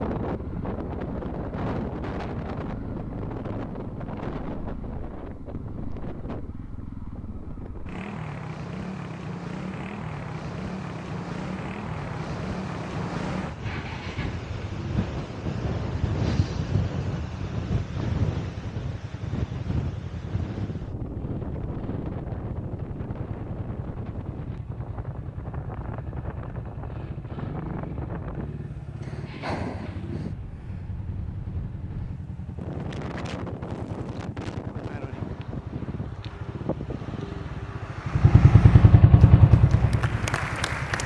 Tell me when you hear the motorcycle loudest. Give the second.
39 s.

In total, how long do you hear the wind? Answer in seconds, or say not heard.
41 s.